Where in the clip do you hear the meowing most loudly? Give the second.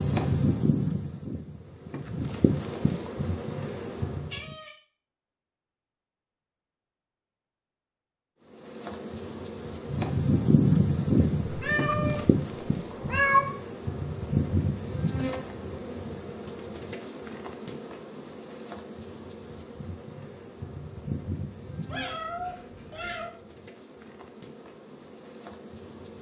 13 s.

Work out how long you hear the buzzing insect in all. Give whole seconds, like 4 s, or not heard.
22 s.